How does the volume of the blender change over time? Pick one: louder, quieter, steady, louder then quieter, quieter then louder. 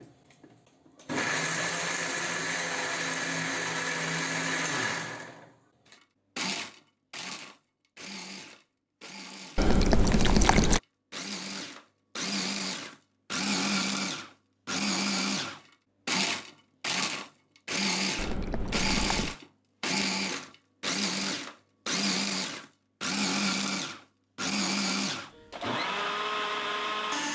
quieter then louder.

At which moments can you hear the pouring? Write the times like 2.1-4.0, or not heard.
9.6-10.8, 18.1-19.4.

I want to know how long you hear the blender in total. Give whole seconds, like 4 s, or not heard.
27 s.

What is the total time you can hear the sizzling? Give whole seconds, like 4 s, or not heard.
not heard.